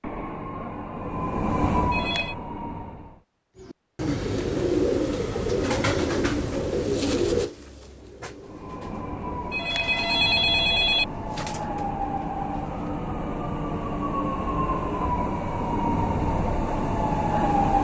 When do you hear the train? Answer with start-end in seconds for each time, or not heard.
0.0-3.2, 8.4-17.7.